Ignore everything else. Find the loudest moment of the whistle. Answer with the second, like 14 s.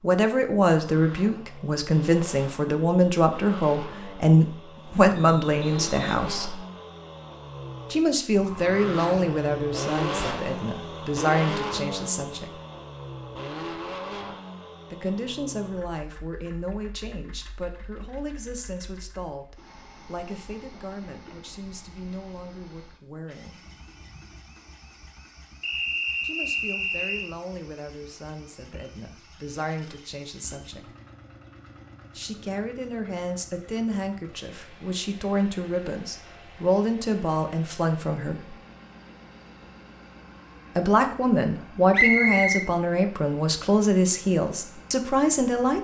42 s.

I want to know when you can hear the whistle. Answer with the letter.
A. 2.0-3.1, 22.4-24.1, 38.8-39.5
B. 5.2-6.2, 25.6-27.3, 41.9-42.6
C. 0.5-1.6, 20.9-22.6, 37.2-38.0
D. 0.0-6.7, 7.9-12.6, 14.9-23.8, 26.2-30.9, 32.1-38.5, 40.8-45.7
B.